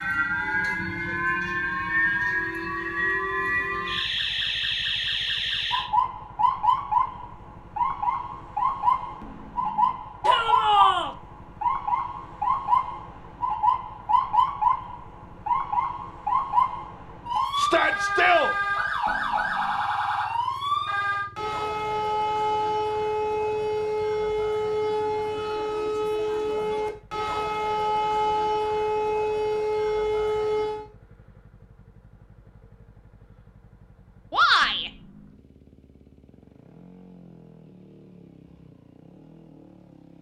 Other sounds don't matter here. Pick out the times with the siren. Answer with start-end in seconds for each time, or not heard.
0.0-30.9.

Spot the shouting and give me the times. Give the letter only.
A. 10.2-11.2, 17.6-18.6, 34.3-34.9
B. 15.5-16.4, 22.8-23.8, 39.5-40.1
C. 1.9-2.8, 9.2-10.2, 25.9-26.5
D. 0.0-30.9
A.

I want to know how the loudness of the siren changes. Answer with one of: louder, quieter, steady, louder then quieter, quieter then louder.
steady.